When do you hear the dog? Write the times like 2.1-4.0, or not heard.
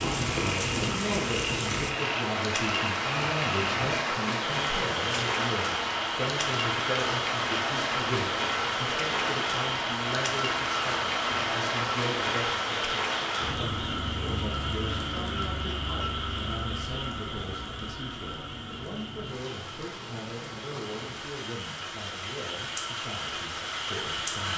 not heard.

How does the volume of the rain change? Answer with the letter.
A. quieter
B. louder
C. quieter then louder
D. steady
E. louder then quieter
A.